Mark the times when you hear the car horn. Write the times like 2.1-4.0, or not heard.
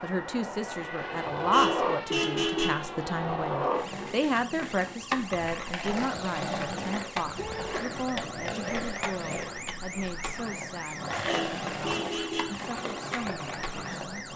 1.3-2.9, 7.2-7.8, 11.1-12.6.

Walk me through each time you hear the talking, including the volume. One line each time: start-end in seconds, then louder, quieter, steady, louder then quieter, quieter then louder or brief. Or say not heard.
0.0-14.3 quieter.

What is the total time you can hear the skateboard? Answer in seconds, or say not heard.
14 s.